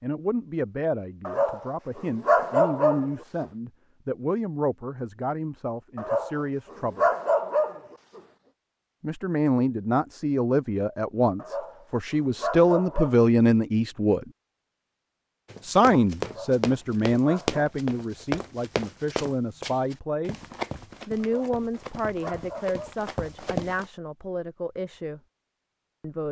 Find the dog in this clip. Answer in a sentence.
The dog can be heard from 1.2 to 3.1 s, from 6.0 to 8.2 s, from 11.3 to 13.6 s, from 16.2 to 17.6 s and from 21.2 to 22.9 s.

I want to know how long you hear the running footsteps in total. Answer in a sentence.
You can hear the running footsteps for 8 seconds altogether.